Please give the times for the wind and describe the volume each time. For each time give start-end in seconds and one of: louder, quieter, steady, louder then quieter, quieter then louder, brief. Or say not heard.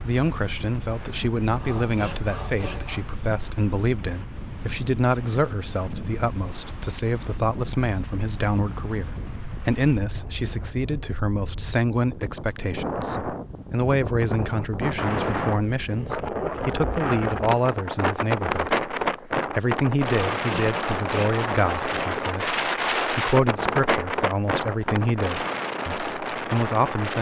0.0-27.1 louder.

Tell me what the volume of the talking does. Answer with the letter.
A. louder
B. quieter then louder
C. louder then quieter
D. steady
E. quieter
D.